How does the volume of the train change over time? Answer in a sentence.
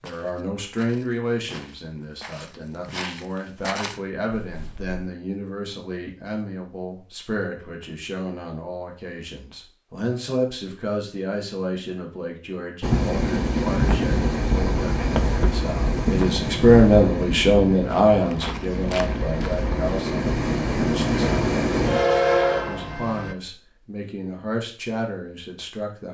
The volume of the train goes down, then up.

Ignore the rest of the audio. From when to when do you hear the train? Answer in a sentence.
You can hear the train from 12.8 to 23.4 s.